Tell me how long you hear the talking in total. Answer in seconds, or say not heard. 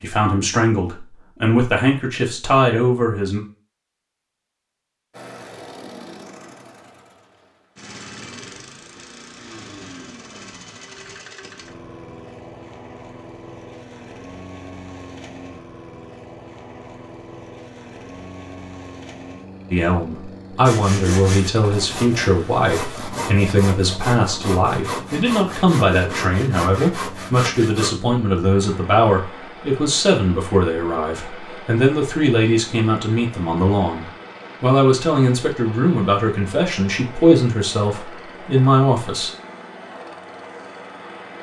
23 s.